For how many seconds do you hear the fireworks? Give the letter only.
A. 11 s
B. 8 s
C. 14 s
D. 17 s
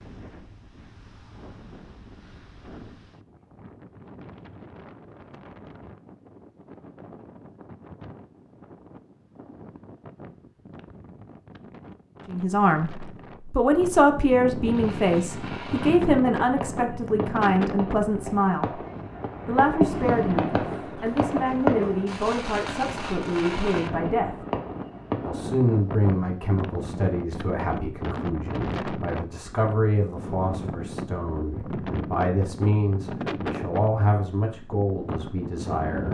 A.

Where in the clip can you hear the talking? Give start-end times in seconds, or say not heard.
12.3-18.8, 19.4-24.4, 25.2-36.0.